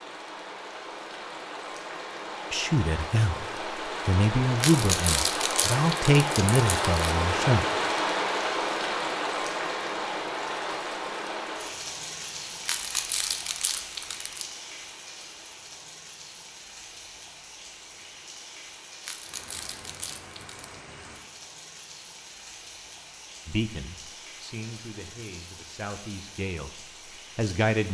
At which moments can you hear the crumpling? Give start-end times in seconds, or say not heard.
4.6-7.0, 12.7-14.5, 19.0-20.7.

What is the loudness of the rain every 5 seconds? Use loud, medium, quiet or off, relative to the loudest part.
medium, loud, medium, quiet, quiet, quiet.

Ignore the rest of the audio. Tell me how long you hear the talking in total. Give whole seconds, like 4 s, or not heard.
8 s.